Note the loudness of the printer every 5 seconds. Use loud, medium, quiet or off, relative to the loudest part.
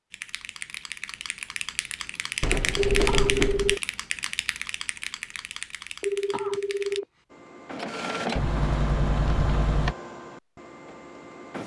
off, loud, medium.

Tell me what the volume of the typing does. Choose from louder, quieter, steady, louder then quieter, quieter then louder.
louder then quieter.